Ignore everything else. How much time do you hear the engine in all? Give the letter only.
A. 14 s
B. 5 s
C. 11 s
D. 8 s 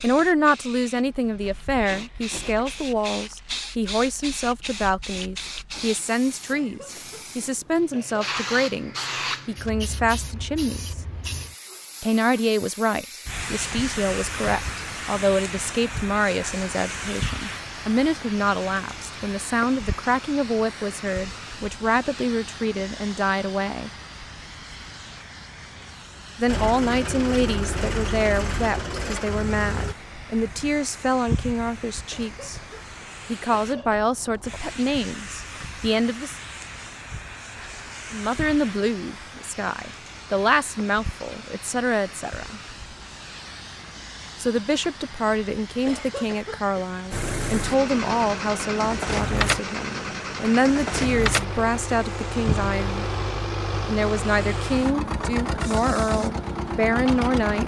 A.